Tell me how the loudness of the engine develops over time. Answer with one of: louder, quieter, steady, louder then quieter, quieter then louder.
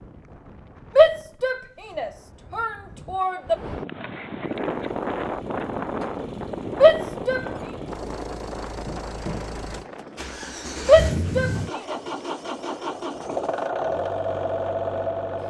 louder.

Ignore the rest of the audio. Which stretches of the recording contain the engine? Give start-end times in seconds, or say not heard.
4.5-15.4.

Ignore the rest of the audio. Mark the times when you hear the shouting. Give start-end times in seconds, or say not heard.
0.9-3.5, 6.8-7.5, 10.8-11.9.